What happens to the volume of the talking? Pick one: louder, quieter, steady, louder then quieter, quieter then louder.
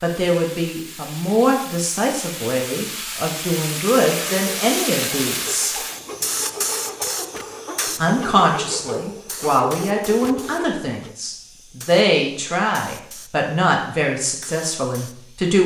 steady.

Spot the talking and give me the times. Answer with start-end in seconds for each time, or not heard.
0.0-5.8, 8.0-15.6.